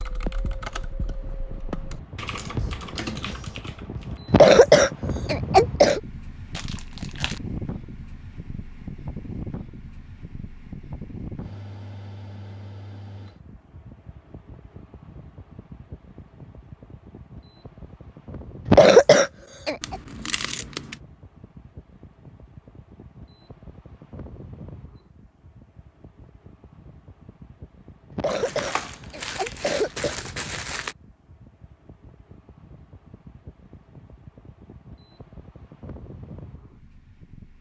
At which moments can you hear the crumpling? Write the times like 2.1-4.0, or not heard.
6.5-7.4, 19.8-21.0, 28.2-30.9.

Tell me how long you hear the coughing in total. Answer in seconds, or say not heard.
5 s.